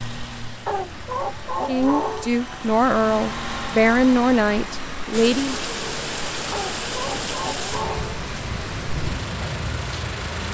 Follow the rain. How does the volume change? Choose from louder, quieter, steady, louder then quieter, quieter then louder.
steady.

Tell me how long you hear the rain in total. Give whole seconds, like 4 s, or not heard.
5 s.